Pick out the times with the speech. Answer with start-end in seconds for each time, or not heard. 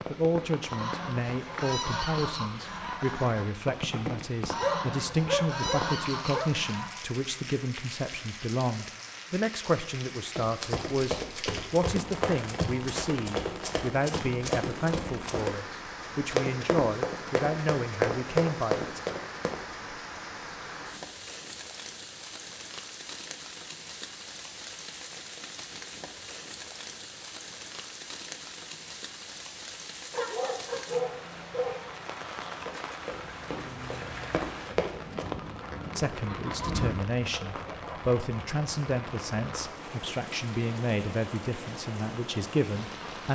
0.1-19.0, 36.0-43.3.